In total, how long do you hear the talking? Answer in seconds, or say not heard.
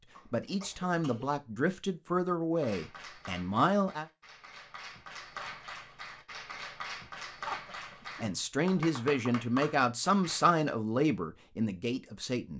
8 s.